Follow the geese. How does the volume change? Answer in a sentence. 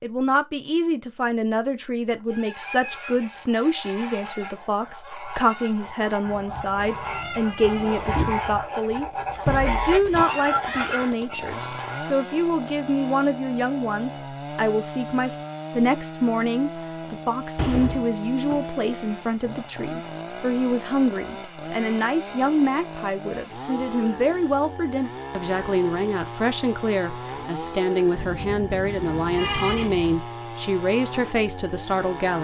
The volume of the geese goes up.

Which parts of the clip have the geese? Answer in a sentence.
The geese can be heard from 2.1 to 12.2 s.